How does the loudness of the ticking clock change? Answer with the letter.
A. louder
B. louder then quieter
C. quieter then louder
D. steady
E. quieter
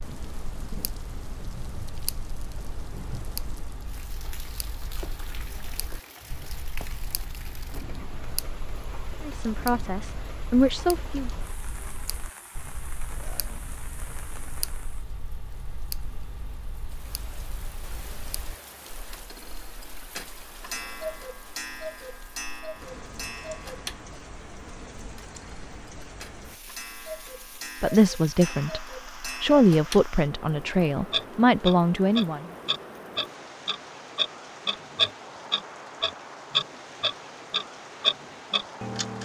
A.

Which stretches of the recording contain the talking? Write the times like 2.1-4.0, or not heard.
9.2-11.3, 27.8-32.5.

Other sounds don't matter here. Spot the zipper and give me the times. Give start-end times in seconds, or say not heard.
not heard.